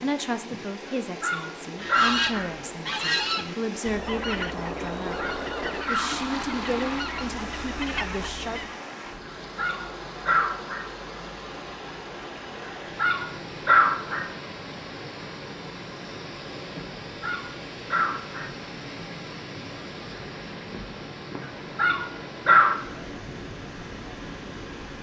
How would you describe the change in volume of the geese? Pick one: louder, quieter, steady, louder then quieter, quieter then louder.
quieter.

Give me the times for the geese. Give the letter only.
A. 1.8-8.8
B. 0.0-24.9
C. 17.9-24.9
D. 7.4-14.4
A.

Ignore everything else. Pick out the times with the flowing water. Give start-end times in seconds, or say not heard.
0.0-24.9.